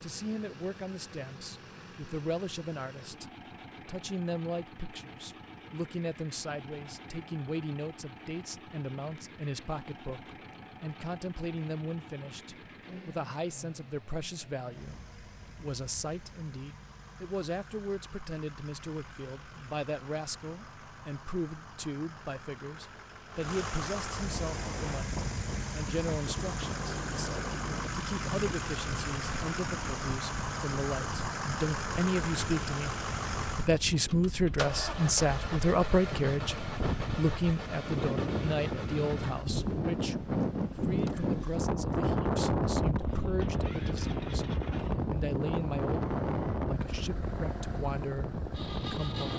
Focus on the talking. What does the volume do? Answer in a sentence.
The loudness of the talking goes up, then down.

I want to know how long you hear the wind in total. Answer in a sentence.
The wind can be heard for 25 seconds in total.